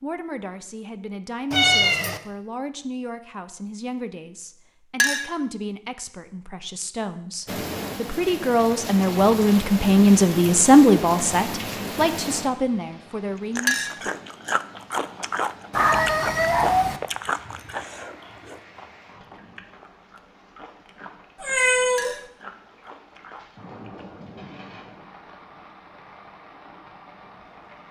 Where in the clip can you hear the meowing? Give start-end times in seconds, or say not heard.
1.5-2.2, 15.7-17.0, 21.4-22.2.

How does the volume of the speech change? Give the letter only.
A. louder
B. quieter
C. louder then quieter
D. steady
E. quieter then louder
C.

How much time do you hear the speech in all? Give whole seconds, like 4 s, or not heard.
14 s.